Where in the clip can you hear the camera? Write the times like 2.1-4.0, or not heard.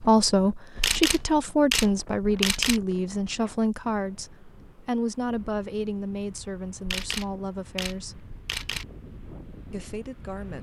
0.8-2.8, 6.8-8.8.